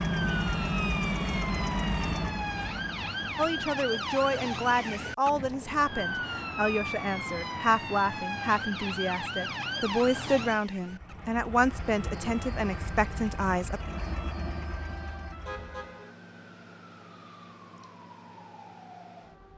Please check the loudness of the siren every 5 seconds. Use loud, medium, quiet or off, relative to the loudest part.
loud, loud, medium, quiet.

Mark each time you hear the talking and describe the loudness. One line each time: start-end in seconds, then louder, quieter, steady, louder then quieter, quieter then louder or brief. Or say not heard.
3.4-13.8 steady.